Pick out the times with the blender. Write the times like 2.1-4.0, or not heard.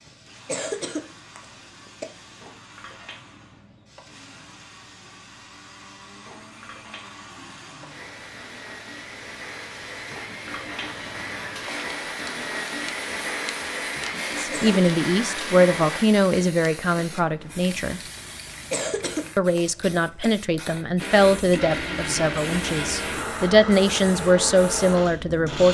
0.2-16.1, 20.9-25.6.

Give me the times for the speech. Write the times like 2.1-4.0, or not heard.
14.3-18.0, 19.4-25.6.